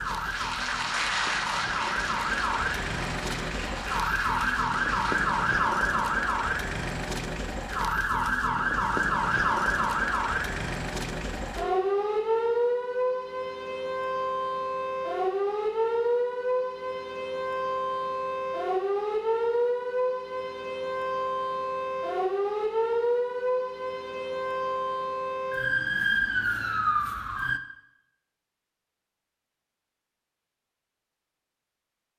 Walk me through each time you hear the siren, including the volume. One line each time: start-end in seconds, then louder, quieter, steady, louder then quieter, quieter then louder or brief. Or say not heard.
0.0-27.6 steady.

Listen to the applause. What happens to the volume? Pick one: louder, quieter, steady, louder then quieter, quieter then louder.
quieter.